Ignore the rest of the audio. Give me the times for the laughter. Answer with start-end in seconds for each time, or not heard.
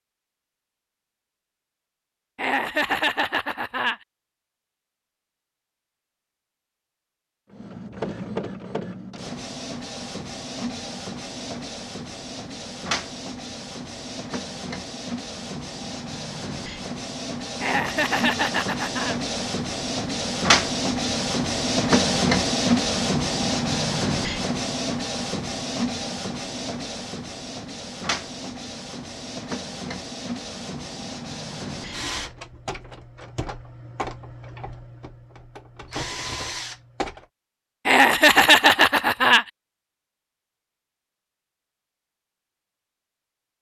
2.4-4.0, 17.6-19.1, 37.9-39.5.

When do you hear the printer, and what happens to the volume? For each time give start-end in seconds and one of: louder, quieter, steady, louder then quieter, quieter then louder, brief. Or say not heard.
7.5-37.2 louder then quieter.